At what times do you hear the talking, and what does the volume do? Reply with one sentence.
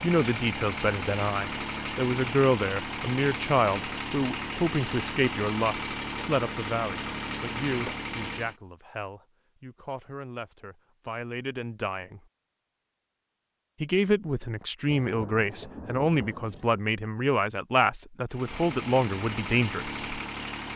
The talking can be heard from 0.0 to 12.2 s, getting quieter; and from 13.8 to 20.2 s, at a steady volume.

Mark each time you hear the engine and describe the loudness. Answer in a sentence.
The engine can be heard from 0.0 to 8.6 s, at a steady volume; and briefly from 18.3 to 20.7 s.